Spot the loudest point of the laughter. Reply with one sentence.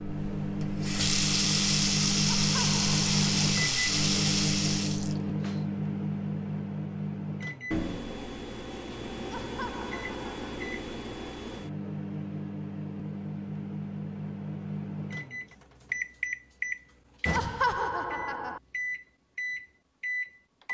The volume of the laughter peaks at 18 seconds.